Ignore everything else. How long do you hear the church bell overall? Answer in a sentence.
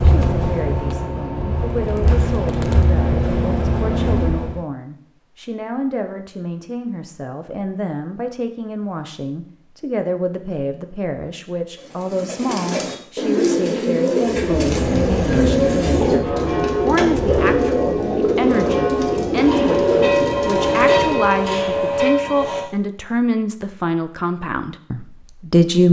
The church bell can be heard for 7 seconds in total.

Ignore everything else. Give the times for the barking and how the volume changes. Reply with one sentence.
The barking can't be heard in this clip.